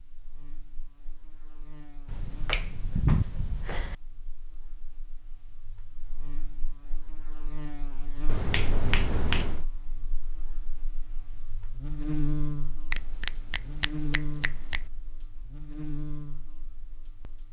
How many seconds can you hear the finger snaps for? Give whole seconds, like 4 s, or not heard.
5 s.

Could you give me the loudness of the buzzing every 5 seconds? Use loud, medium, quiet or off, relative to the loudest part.
quiet, medium, loud, medium.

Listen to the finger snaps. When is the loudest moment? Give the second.
3 s.